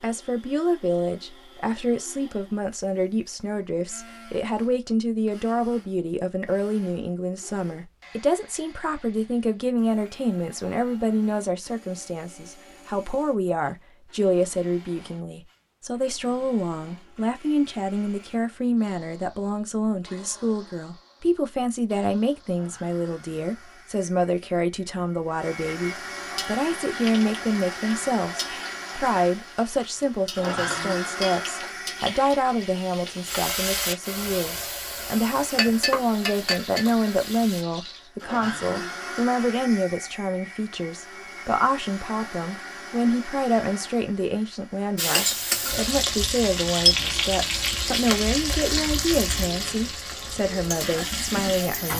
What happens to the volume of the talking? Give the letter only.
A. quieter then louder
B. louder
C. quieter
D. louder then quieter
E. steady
E.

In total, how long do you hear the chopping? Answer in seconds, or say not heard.
not heard.